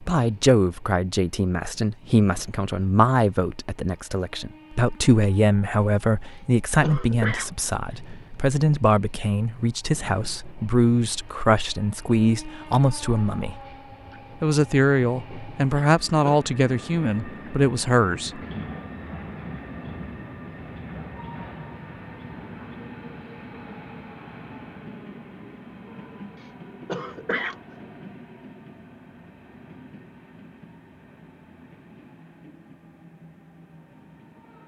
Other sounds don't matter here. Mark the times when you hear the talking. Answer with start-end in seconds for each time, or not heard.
0.0-13.6, 14.4-18.4.